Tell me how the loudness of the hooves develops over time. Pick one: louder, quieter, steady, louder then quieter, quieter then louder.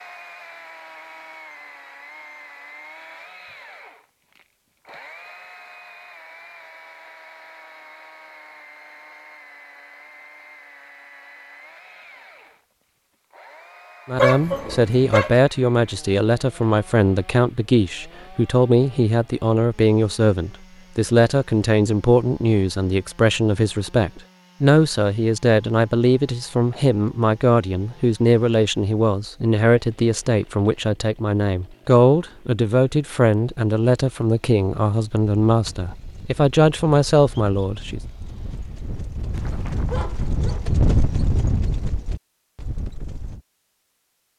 louder then quieter.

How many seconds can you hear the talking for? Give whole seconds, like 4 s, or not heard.
24 s.